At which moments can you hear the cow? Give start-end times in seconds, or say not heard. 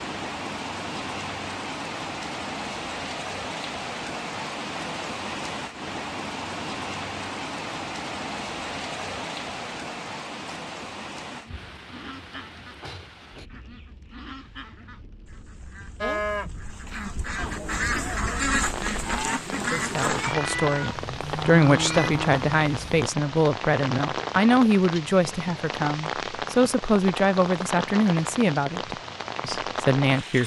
16.0-23.1.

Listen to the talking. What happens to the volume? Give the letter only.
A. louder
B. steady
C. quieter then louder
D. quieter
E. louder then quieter
B.